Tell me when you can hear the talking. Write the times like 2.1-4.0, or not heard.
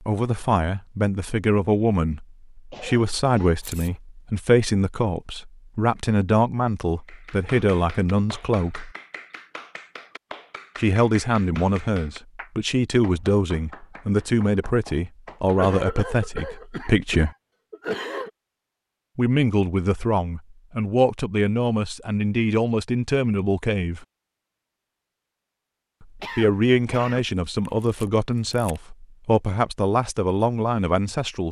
0.0-8.9, 10.8-17.3, 19.1-24.1, 26.0-31.4.